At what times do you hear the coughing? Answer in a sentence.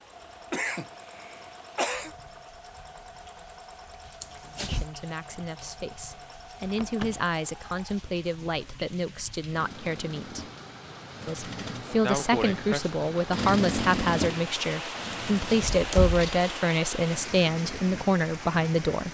The coughing can be heard from 0.5 to 2.1 s and from 12.0 to 12.9 s.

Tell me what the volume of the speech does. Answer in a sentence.
The volume of the speech goes up.